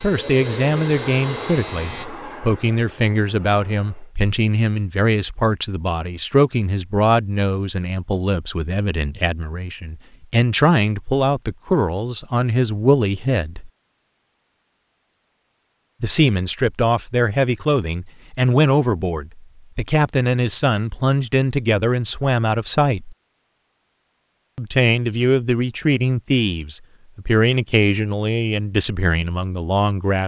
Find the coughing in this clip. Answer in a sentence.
You can't hear the coughing here.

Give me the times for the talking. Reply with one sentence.
The talking can be heard from 0.0 to 13.7 s, from 16.0 to 23.1 s and from 24.6 to 30.2 s.